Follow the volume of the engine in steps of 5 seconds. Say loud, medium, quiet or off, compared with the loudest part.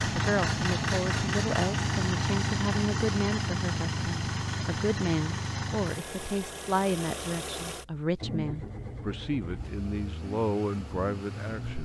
loud, medium, medium.